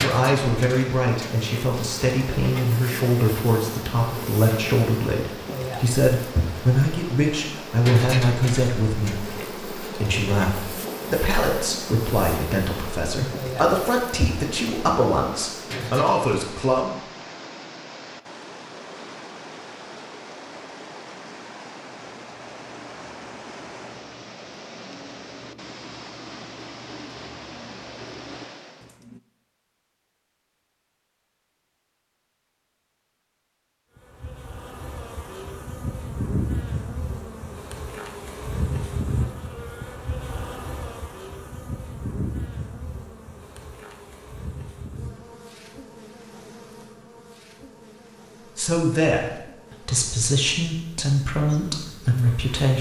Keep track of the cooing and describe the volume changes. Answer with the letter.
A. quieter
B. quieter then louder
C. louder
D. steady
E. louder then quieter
C.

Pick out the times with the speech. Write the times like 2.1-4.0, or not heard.
0.0-16.9, 48.5-52.7.